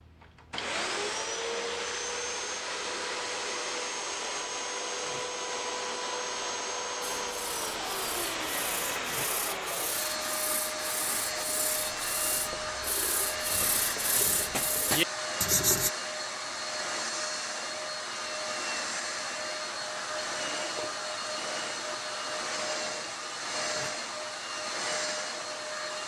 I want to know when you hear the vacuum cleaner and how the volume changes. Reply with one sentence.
The vacuum cleaner can be heard from 0.0 to 26.0 s, at a steady volume.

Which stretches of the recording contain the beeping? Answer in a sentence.
You can't hear the beeping here.